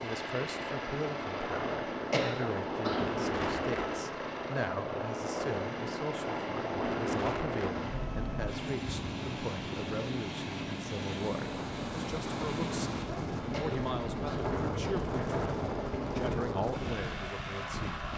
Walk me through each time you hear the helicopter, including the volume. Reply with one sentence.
You can hear the helicopter from 0.0 to 18.1 s, at a steady volume.